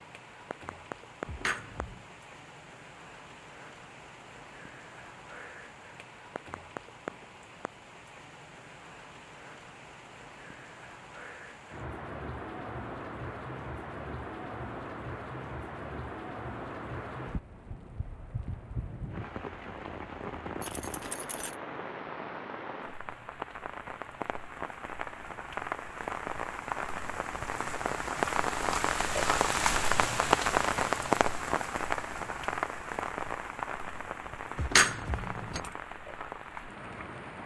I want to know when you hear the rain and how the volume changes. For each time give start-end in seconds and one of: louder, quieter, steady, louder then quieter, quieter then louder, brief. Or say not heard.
0.0-37.4 louder.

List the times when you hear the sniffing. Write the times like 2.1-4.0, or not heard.
not heard.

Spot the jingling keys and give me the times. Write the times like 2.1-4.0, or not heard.
1.2-2.0, 20.6-21.6, 34.5-35.7.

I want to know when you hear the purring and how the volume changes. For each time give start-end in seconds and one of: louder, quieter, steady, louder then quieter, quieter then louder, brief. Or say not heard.
not heard.